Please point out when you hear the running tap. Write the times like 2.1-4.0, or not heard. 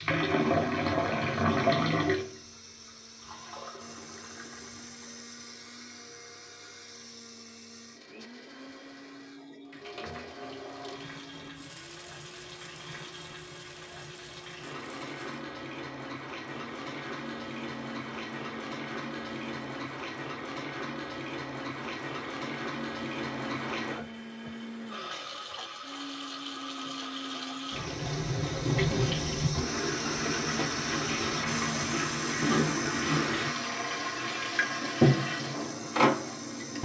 0.0-5.5, 9.6-36.8.